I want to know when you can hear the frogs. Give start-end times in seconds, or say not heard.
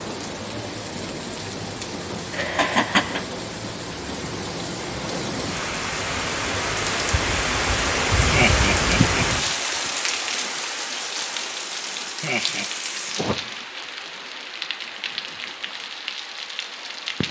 not heard.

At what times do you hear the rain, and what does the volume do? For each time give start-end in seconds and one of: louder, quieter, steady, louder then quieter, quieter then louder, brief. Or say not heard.
0.0-17.2 louder then quieter.